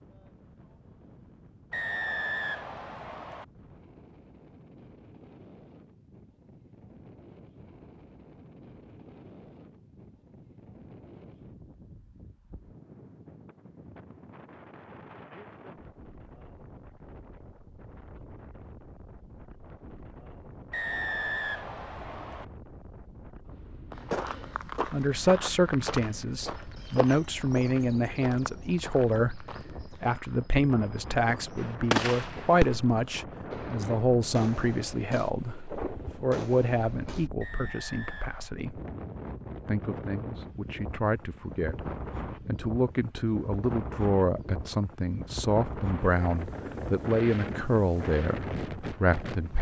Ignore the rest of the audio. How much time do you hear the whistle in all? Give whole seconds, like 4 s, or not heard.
5 s.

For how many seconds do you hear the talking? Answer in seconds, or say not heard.
24 s.